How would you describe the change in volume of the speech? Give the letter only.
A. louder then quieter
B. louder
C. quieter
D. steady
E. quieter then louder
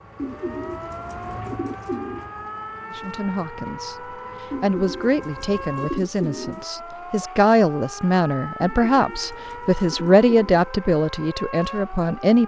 B.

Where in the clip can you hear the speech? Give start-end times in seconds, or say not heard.
2.9-12.4.